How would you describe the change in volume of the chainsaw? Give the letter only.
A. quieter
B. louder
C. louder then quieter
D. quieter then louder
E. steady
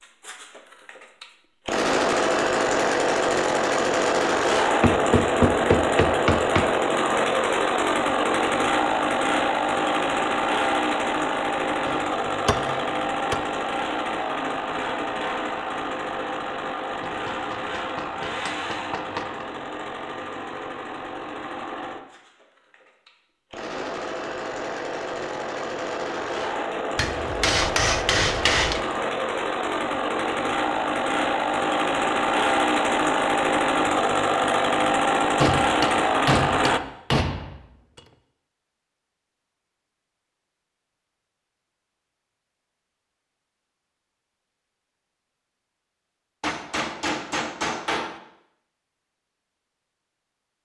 D.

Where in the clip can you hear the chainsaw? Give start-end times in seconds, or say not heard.
0.2-36.8.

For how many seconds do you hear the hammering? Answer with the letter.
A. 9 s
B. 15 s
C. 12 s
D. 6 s
C.